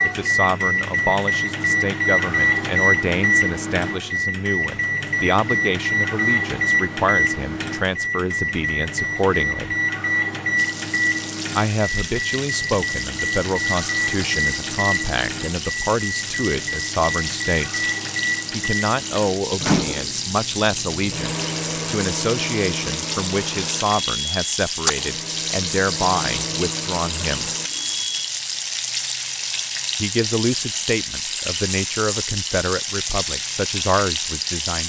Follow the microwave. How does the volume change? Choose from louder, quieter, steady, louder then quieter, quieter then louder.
quieter.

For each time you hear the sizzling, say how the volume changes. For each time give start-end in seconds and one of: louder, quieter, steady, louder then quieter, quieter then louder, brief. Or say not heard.
10.6-34.8 louder.